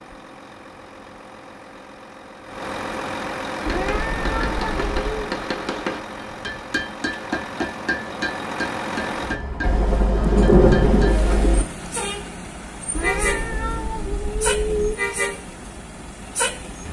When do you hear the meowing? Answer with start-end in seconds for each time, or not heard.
3.6-5.3, 12.9-14.9.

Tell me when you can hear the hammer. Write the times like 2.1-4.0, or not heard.
3.5-11.2.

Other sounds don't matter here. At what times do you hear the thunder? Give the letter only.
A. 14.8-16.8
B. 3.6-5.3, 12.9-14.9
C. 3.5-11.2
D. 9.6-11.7
D.